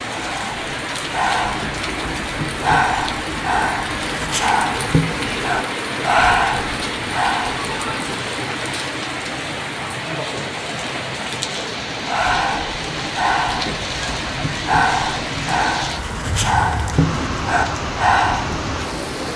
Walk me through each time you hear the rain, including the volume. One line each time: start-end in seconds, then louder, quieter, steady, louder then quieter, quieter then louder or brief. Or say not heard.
0.0-19.3 steady.